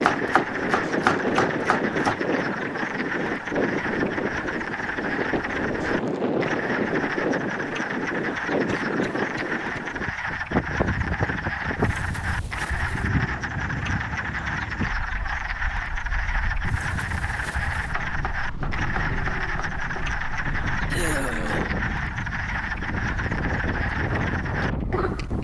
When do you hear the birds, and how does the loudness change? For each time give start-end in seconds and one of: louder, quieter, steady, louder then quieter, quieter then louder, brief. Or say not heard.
not heard.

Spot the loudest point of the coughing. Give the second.
21 s.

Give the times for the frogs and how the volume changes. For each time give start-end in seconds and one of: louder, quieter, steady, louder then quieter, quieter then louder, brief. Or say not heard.
0.0-25.3 steady.